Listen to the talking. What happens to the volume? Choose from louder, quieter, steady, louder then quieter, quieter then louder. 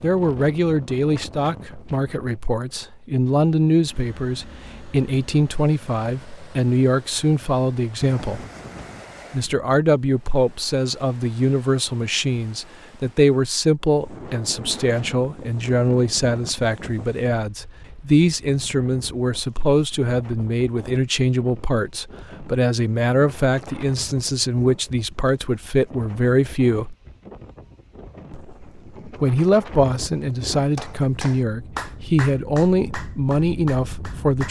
steady.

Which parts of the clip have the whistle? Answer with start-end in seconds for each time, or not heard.
not heard.